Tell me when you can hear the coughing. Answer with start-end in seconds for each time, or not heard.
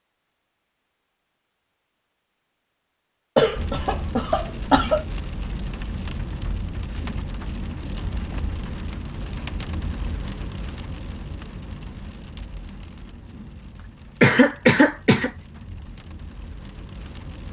3.4-5.0, 14.2-15.3.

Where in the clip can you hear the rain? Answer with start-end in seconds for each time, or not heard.
3.5-17.4.